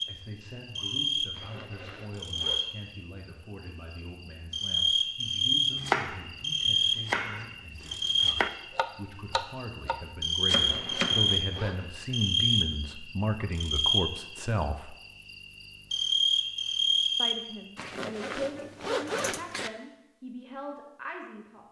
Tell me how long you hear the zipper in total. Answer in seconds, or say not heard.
5 s.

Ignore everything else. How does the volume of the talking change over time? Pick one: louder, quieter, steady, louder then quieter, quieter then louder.
louder then quieter.